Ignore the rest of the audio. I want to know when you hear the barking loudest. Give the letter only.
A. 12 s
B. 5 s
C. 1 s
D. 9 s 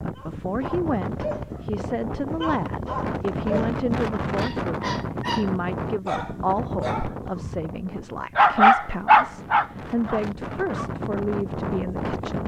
D.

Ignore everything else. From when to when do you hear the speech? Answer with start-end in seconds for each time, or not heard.
0.1-12.4.